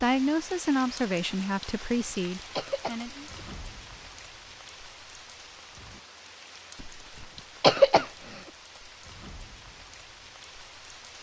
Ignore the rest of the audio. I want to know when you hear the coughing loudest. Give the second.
8 s.